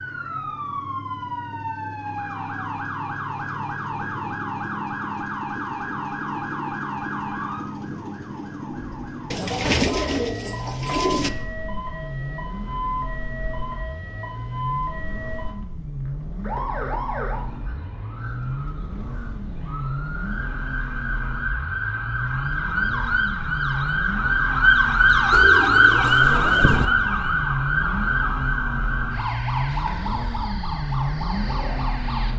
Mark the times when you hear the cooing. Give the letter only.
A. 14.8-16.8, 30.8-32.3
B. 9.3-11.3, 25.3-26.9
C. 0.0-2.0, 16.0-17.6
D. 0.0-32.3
B.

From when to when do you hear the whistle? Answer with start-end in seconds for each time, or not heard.
not heard.